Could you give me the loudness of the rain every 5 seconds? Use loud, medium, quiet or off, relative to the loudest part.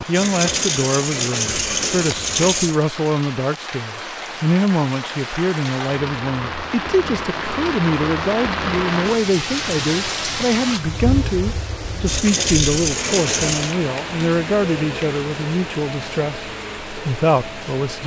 medium, loud, loud, medium.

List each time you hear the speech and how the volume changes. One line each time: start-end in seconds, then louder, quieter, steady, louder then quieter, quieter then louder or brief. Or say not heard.
0.1-18.0 steady.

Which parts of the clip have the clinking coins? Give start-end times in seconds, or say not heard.
0.1-2.8, 12.1-13.8.